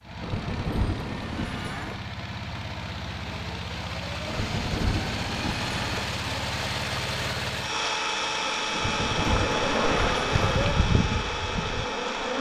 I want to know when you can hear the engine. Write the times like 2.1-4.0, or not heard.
0.0-12.3.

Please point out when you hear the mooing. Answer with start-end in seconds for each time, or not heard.
0.2-1.9, 4.2-6.1, 8.7-10.8.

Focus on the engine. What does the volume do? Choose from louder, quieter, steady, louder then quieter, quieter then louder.
louder.